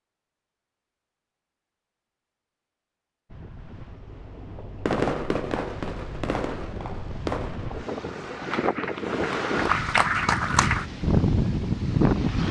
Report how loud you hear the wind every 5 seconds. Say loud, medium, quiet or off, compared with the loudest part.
quiet, medium, loud.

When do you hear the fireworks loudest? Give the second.
5 s.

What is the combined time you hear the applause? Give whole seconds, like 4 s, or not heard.
2 s.